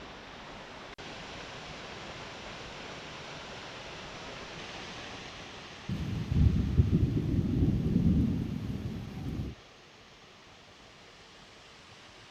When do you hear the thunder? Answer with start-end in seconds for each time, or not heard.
5.8-9.6.